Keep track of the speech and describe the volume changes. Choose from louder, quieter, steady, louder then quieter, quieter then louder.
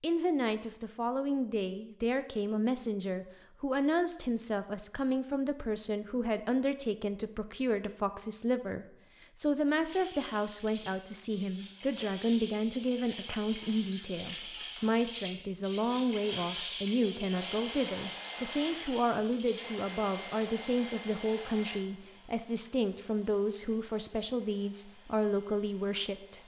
steady.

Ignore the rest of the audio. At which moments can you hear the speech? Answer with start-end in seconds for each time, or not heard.
0.0-26.4.